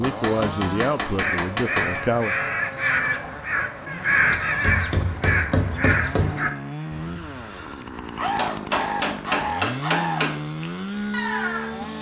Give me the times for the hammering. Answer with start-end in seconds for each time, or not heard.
0.0-2.0, 4.2-6.3, 8.3-10.3.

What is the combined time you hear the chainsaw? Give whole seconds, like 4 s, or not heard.
12 s.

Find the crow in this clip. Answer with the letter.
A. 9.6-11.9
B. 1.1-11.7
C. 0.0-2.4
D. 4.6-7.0
B.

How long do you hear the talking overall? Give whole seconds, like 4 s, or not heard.
2 s.